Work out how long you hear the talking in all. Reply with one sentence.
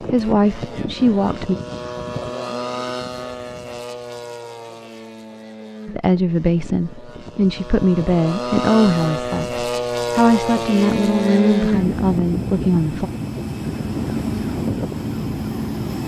The talking can be heard for 9 seconds in total.